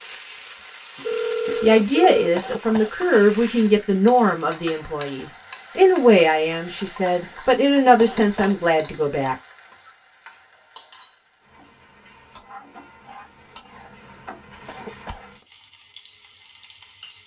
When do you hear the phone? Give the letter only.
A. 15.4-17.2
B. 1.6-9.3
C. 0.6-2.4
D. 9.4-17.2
C.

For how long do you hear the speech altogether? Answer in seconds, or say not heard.
8 s.